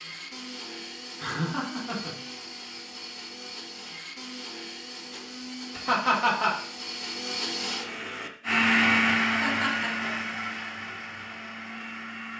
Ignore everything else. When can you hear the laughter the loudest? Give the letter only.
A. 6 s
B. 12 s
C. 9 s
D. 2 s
A.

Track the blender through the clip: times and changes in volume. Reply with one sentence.
The blender can be heard from 0.0 to 12.3 s, getting louder then quieter.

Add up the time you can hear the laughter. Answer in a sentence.
The laughter can be heard for 3 seconds in total.